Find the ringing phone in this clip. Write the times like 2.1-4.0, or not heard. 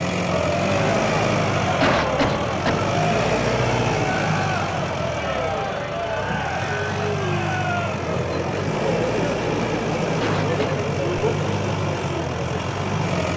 not heard.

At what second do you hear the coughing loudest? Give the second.
2 s.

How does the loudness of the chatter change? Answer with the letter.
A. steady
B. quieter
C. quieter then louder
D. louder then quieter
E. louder
A.